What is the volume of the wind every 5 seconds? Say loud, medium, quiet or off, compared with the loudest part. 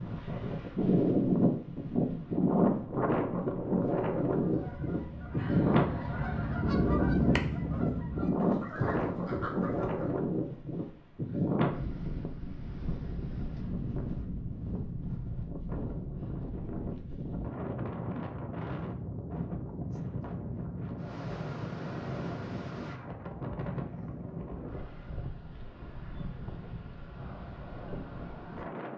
loud, loud, medium, medium, medium, quiet.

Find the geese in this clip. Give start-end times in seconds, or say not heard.
4.3-10.2.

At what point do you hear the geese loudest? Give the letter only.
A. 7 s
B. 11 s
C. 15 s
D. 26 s
A.